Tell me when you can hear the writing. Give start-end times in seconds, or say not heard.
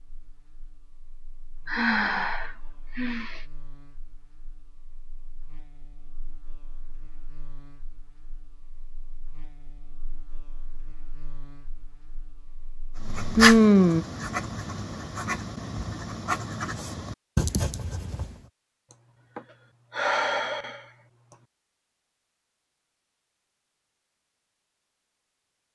13.0-18.4.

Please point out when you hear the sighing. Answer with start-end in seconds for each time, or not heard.
1.6-3.5, 13.3-14.1, 18.9-21.4.